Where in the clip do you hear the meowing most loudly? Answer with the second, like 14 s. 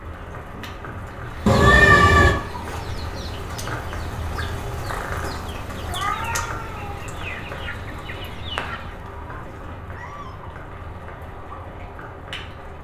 2 s.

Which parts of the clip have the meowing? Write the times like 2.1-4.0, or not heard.
1.4-2.4, 4.8-7.0, 9.2-10.3.